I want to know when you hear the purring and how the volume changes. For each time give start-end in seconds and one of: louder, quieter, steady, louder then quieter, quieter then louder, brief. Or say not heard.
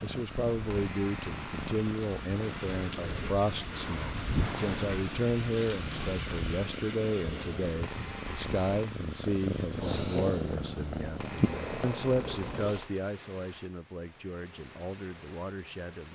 0.0-12.8 louder.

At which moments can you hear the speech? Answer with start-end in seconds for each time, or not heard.
0.0-16.1.